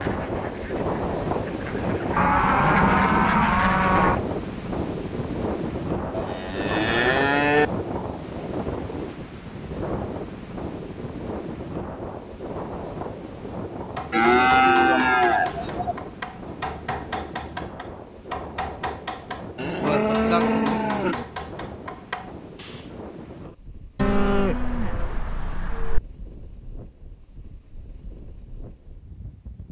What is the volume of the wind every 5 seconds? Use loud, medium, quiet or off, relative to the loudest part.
loud, loud, medium, medium, quiet, quiet.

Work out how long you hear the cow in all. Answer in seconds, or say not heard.
9 s.